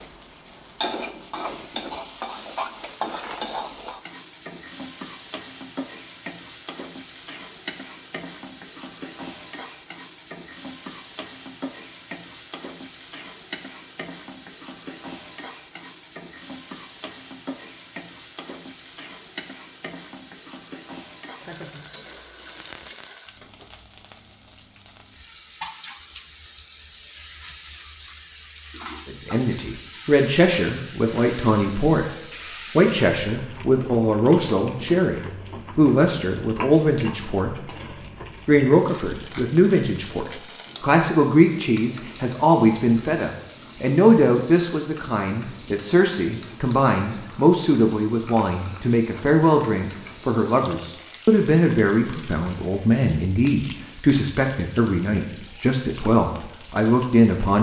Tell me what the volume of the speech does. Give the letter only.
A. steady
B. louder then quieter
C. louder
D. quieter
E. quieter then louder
A.